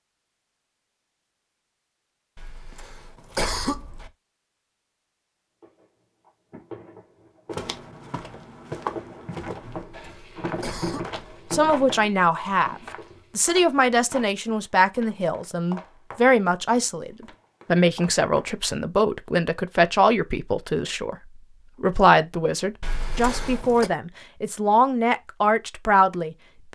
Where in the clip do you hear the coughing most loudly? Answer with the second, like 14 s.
4 s.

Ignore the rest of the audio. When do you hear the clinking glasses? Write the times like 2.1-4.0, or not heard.
not heard.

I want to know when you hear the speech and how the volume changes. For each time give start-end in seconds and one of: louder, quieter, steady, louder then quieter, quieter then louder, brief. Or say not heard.
11.5-12.8 brief
13.3-26.6 steady.